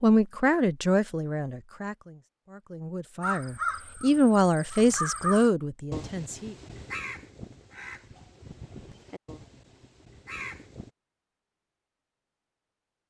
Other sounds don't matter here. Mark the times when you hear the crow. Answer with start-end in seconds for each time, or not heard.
3.2-10.9.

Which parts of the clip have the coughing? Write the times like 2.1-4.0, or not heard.
not heard.